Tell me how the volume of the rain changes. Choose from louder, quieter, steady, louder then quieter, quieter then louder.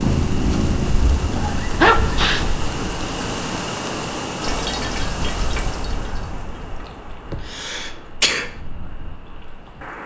quieter.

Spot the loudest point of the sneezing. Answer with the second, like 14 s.
2 s.